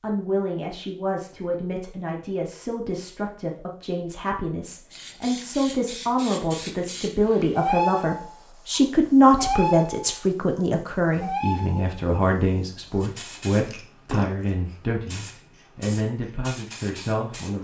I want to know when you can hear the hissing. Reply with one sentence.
The hissing can be heard from 4.9 to 17.5 s.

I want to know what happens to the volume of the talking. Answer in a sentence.
The loudness of the talking goes up, then down.